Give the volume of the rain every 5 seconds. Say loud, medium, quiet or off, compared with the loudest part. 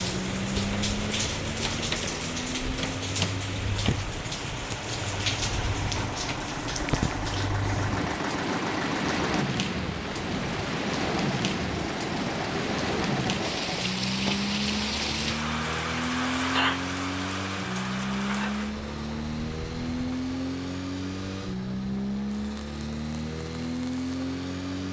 loud, loud, loud, loud, quiet.